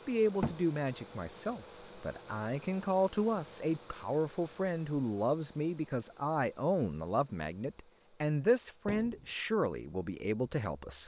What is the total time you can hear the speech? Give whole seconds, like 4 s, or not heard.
11 s.